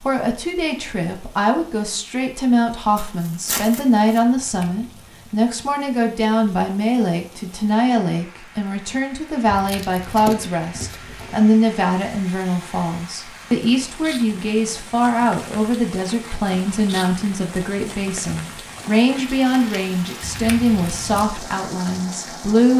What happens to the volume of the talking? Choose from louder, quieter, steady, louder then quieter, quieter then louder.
steady.